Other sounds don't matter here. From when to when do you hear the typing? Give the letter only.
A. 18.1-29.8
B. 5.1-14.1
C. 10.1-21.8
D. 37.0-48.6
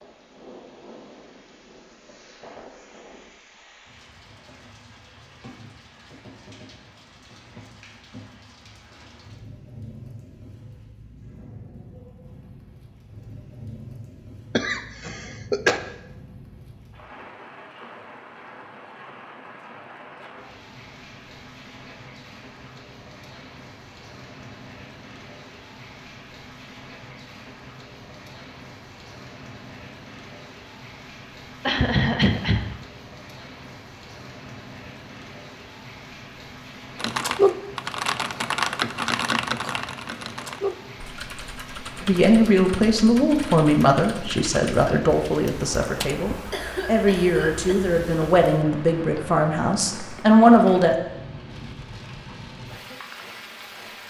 D.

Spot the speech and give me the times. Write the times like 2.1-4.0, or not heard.
42.0-51.0.